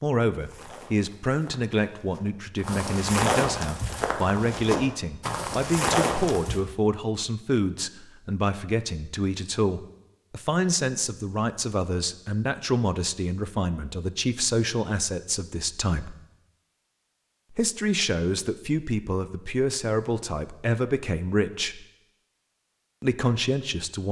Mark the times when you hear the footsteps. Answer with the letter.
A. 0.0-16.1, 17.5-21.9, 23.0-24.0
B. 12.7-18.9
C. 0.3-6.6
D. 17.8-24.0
C.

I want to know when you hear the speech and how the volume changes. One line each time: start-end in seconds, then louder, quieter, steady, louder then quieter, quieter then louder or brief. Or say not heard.
0.0-16.1 steady
17.5-21.9 steady
23.0-24.0 brief.